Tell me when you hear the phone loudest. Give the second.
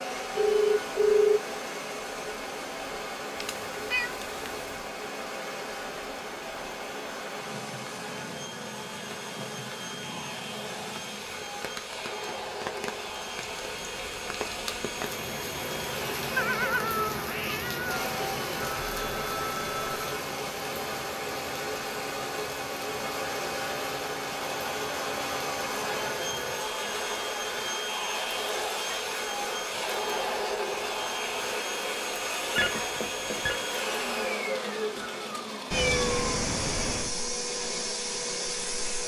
1 s.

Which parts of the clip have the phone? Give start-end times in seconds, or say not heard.
0.3-1.4, 18.6-19.9, 32.5-33.6.